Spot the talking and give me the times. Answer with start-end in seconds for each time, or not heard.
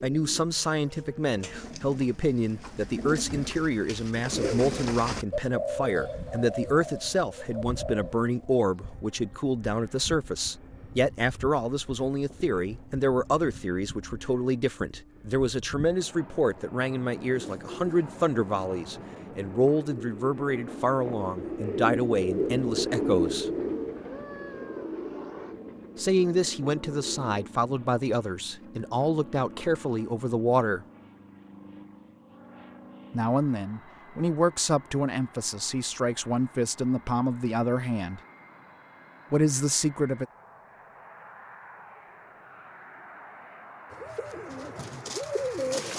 0.0-23.4, 25.9-30.9, 33.1-38.2, 39.3-40.2.